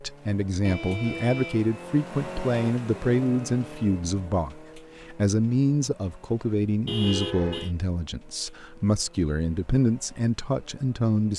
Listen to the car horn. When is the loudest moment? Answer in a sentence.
The volume of the car horn peaks at 7 seconds.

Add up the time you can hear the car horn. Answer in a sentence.
You can hear the car horn for 2 seconds altogether.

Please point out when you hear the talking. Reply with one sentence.
The talking can be heard from 0.0 to 11.3 s.